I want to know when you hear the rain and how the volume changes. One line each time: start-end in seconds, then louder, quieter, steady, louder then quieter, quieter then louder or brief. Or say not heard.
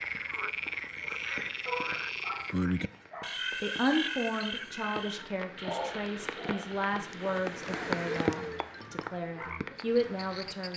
0.0-10.7 louder then quieter.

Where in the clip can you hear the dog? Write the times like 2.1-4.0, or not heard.
1.6-3.3, 5.6-6.7.